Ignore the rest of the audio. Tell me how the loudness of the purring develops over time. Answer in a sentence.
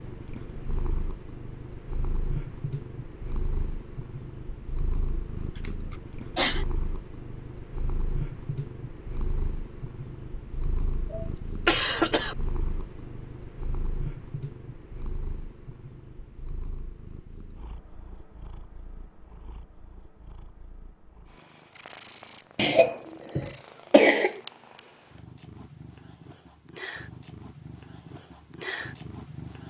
The volume of the purring goes down, then up.